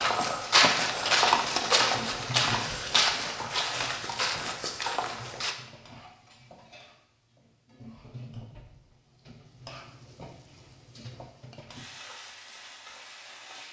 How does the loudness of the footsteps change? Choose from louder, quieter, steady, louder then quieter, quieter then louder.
quieter.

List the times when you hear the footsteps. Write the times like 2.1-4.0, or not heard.
0.0-5.5.